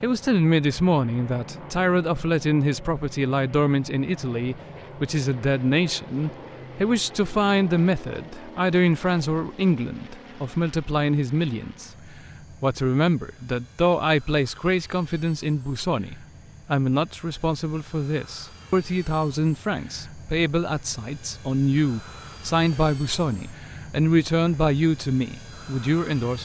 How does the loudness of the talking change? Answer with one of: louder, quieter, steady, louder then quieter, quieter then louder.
steady.